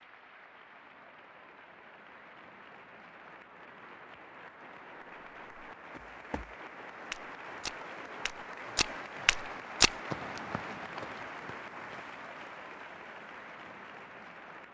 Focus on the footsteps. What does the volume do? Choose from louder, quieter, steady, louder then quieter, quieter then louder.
louder then quieter.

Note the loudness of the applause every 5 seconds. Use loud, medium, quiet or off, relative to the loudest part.
medium, loud, loud.